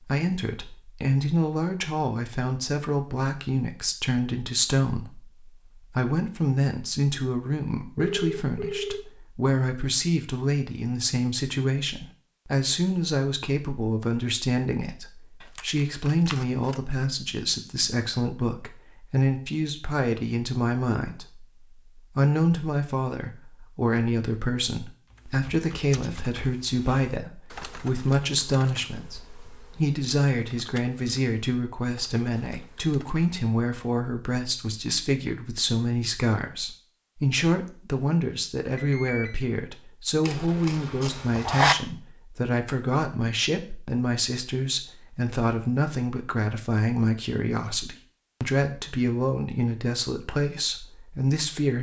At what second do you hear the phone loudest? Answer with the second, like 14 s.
8 s.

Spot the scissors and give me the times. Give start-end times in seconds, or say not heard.
15.6-16.8, 40.2-41.8.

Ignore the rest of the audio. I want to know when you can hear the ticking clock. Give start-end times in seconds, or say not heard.
not heard.